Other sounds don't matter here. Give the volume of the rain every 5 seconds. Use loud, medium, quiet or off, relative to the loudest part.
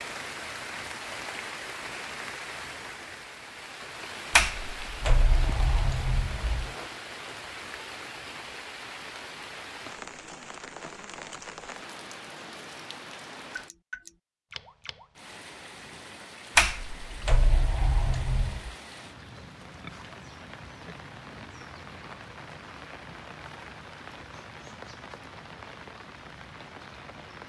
loud, loud, loud, medium, medium, medium.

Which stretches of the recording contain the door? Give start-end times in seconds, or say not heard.
4.3-6.7, 16.6-18.7.